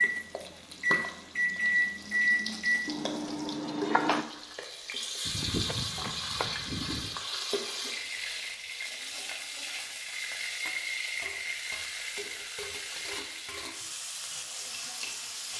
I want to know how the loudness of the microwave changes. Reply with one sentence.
The loudness of the microwave goes down.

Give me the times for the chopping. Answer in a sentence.
The chopping can be heard from 5.2 to 7.2 s.